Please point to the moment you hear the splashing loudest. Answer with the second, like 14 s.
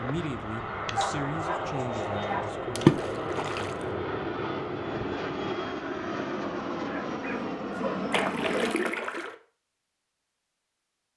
3 s.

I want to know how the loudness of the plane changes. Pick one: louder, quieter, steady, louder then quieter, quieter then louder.
steady.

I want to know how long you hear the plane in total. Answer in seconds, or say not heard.
9 s.